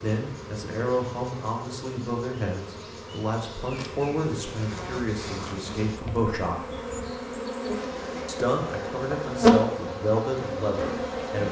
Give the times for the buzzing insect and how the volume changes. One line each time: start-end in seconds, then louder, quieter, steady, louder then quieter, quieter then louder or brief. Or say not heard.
0.0-11.4 louder.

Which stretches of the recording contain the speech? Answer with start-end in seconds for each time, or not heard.
0.0-6.7, 8.2-11.4.